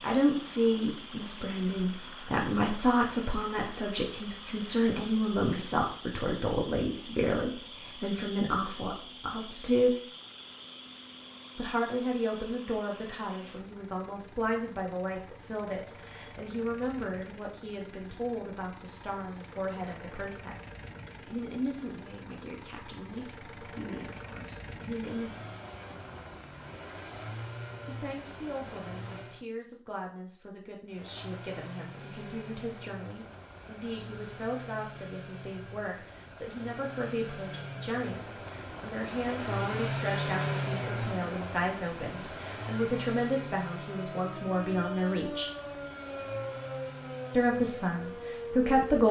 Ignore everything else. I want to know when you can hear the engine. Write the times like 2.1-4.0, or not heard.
0.0-29.4, 30.9-49.0.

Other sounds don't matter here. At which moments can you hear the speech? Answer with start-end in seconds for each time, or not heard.
0.0-10.0, 11.6-25.4, 27.9-45.5, 47.3-49.0.